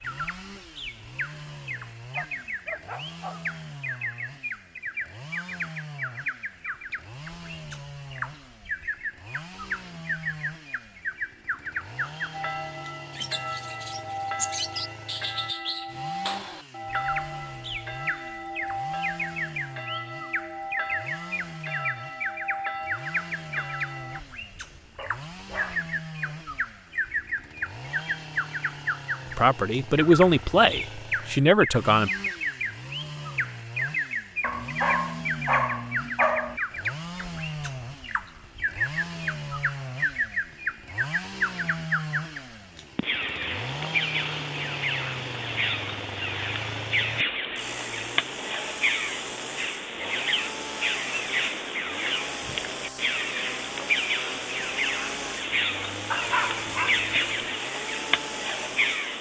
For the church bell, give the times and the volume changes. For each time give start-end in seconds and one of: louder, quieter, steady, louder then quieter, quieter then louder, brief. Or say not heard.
12.3-24.2 steady.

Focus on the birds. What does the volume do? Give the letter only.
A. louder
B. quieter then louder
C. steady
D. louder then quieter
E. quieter
A.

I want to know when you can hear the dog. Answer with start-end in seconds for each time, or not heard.
2.1-3.5, 24.9-26.4, 34.4-36.6, 56.1-57.0.